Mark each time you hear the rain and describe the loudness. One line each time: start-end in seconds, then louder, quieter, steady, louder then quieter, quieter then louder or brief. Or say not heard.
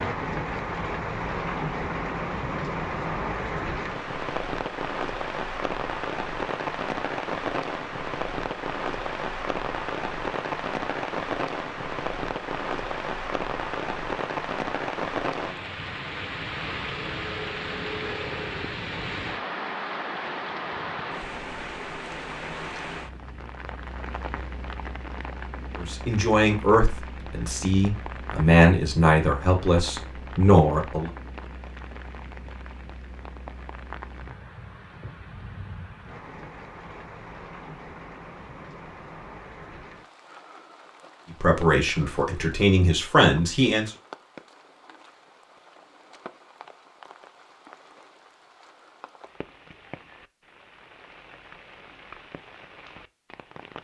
0.0-53.7 quieter.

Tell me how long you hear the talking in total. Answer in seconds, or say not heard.
8 s.